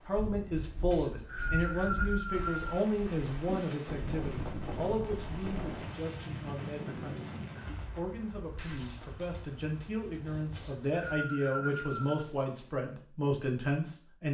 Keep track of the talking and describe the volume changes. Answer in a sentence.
The volume of the talking goes down, then up.